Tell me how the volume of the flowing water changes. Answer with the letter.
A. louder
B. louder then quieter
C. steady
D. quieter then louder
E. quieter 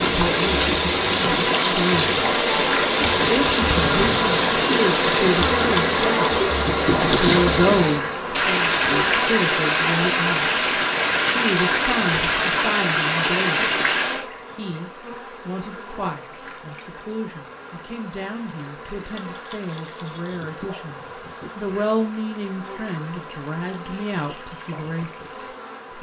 C.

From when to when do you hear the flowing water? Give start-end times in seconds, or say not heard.
0.0-14.2.